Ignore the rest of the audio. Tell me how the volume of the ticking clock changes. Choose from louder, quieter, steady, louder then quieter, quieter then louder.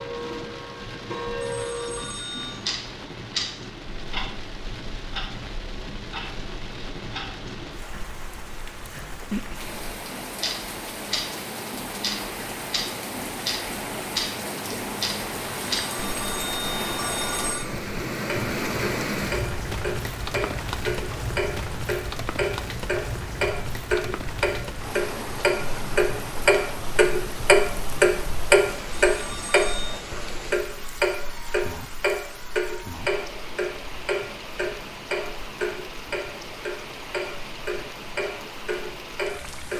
louder then quieter.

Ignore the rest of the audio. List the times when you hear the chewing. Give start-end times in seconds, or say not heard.
not heard.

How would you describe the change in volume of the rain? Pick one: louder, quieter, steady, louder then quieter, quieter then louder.
louder then quieter.